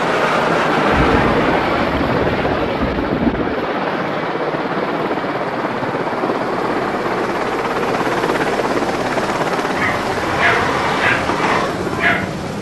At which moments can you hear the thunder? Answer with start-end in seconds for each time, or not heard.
0.9-3.7.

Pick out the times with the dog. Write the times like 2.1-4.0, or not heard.
9.8-12.5.